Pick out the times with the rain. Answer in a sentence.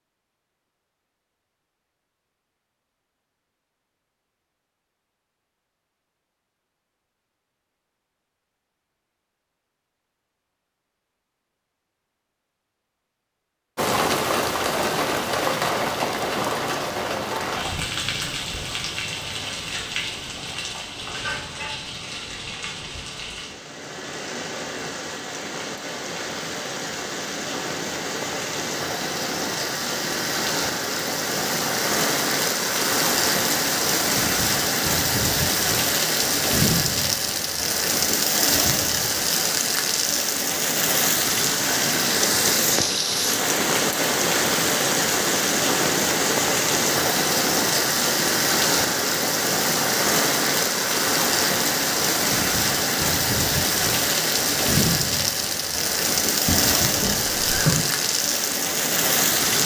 You can hear the rain from 13.8 to 59.6 s.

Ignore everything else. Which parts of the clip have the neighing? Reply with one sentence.
You can hear the neighing from 56.5 to 57.8 s.